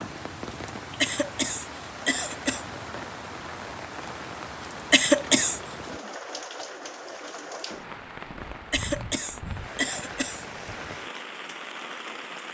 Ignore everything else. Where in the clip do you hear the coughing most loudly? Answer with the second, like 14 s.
5 s.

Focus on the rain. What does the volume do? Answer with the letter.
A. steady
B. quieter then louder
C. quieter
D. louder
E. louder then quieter
A.